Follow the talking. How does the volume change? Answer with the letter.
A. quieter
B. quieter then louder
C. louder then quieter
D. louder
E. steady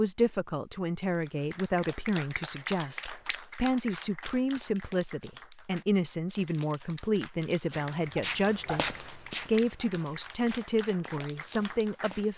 E.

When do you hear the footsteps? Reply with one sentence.
The footsteps can be heard from 7.7 to 12.3 s.